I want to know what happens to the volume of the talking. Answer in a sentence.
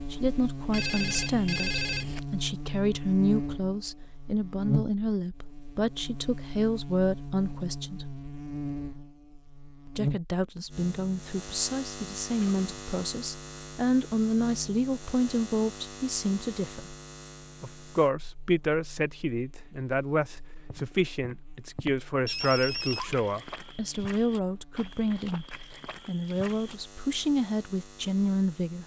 The volume of the talking stays about the same.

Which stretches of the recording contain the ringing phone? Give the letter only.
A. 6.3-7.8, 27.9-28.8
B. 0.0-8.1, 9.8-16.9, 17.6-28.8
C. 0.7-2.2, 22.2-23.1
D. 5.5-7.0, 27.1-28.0
C.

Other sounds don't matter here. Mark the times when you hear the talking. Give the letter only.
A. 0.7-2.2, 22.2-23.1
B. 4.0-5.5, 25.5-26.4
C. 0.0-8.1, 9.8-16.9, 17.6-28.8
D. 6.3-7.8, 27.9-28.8
C.